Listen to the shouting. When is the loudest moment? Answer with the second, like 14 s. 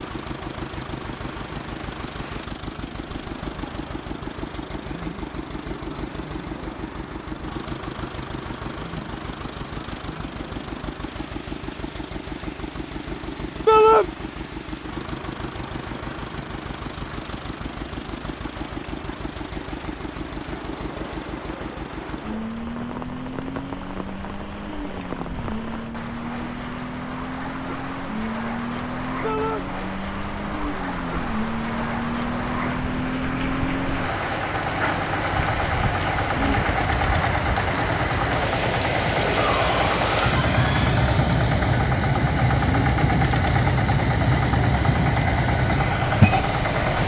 14 s.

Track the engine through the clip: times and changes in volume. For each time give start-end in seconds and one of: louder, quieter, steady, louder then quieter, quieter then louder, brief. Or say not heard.
0.0-47.0 louder.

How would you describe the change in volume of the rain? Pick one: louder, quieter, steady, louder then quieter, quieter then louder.
louder.